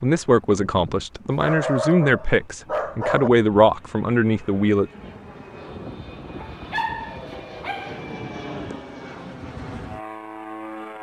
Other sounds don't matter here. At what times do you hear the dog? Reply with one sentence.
You can hear the dog from 1.3 to 3.3 s and from 6.3 to 8.1 s.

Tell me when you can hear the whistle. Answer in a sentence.
The whistle can't be heard in this clip.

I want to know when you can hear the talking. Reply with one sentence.
The talking can be heard from 0.0 to 4.8 s.